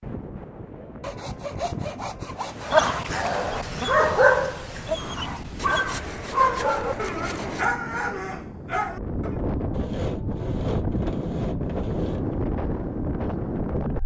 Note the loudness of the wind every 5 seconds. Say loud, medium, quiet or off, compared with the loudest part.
medium, medium, loud.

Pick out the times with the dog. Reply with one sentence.
The dog can be heard from 2.6 to 9.3 s.